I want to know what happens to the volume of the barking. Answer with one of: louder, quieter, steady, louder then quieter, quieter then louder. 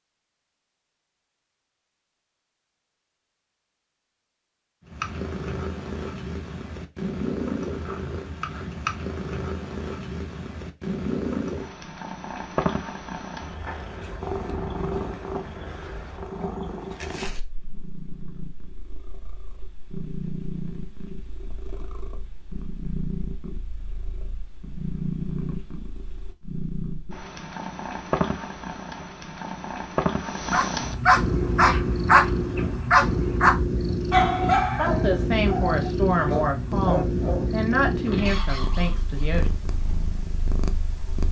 quieter.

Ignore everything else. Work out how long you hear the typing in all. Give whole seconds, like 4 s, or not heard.
not heard.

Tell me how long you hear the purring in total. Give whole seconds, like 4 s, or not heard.
36 s.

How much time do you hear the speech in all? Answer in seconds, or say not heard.
5 s.